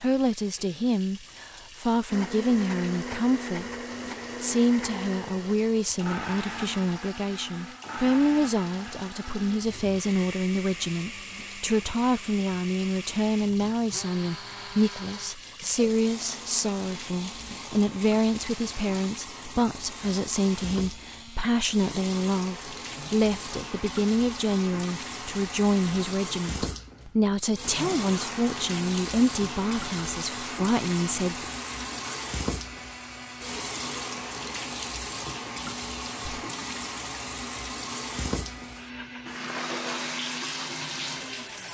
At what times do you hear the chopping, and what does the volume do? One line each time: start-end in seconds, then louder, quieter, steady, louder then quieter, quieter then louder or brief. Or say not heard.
not heard.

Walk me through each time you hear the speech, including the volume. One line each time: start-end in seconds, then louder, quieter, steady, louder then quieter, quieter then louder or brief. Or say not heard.
0.0-31.4 steady.